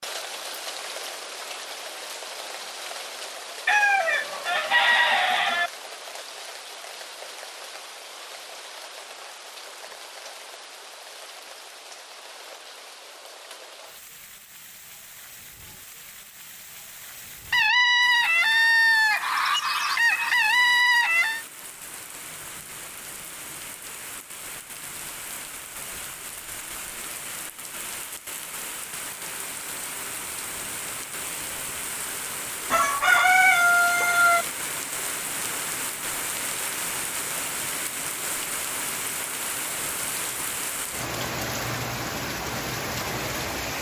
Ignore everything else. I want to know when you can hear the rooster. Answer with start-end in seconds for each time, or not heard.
3.6-5.7, 17.5-21.4, 32.7-34.5.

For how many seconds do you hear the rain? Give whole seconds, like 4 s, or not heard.
44 s.